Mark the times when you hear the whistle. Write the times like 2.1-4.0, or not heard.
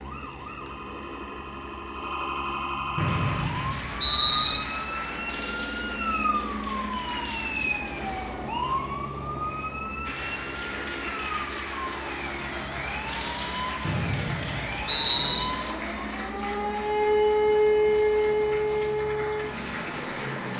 3.0-4.6, 13.8-15.4.